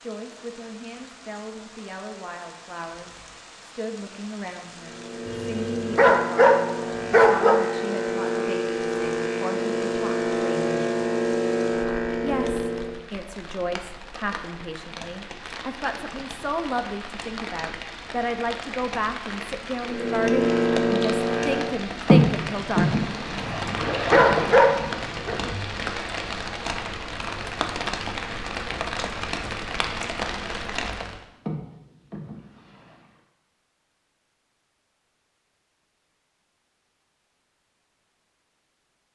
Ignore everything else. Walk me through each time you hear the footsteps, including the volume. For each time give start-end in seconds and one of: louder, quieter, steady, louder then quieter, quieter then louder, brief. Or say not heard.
not heard.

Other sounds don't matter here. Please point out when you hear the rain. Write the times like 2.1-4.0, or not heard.
0.0-31.2.